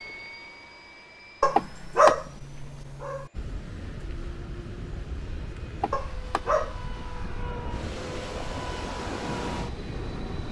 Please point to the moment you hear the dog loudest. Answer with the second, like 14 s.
2 s.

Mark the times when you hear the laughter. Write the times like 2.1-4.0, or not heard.
1.6-2.1, 5.8-6.4.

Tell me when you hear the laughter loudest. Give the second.
2 s.